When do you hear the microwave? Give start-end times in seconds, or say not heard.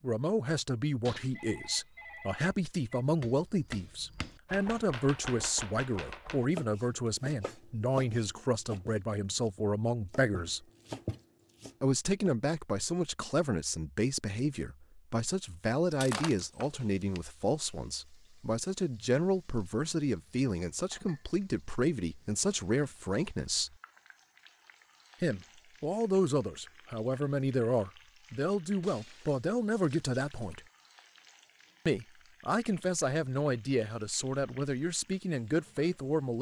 not heard.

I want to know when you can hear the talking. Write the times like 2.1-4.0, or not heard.
0.0-10.7, 11.8-23.7, 25.2-30.6, 31.9-36.3.